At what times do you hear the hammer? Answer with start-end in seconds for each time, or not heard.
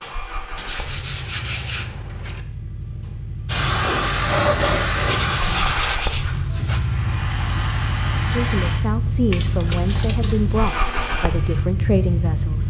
not heard.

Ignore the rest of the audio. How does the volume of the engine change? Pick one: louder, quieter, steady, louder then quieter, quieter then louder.
louder.